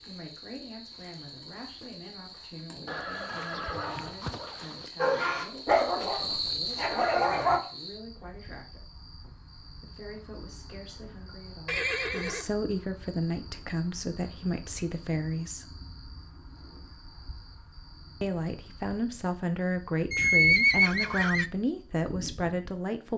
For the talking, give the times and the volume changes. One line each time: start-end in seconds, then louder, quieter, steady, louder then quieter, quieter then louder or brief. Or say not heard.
0.1-8.8 steady
9.8-15.7 louder
18.2-23.1 steady.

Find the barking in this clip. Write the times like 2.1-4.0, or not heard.
5.0-7.6.